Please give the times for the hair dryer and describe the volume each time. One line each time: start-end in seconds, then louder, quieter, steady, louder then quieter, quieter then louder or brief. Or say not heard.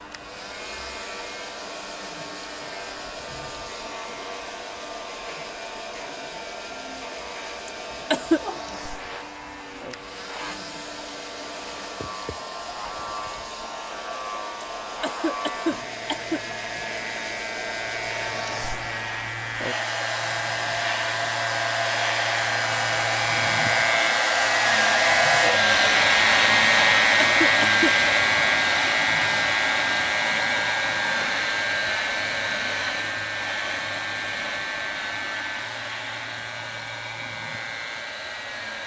0.0-38.8 louder then quieter.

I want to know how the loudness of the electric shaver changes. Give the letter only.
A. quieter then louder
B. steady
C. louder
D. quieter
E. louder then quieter
E.